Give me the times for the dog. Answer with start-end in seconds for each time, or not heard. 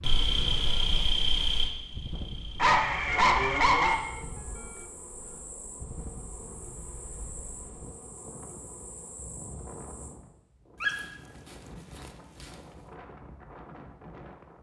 2.5-4.0, 10.8-12.6.